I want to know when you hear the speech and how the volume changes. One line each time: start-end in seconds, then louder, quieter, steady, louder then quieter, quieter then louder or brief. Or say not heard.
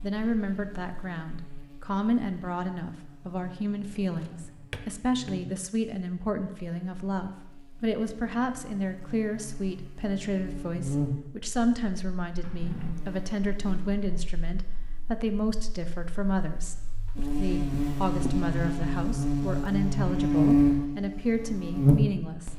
0.0-22.5 steady.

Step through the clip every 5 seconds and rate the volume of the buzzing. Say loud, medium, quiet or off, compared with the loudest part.
quiet, quiet, quiet, medium, loud.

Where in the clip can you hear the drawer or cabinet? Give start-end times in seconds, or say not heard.
4.2-5.3, 12.4-12.9, 17.7-18.4.